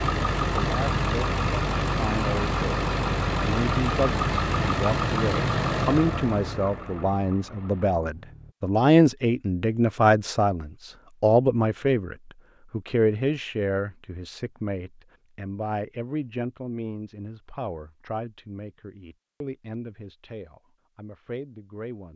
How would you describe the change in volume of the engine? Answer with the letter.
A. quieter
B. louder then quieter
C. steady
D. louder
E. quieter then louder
A.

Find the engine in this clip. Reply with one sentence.
The engine can be heard from 0.0 to 8.6 s.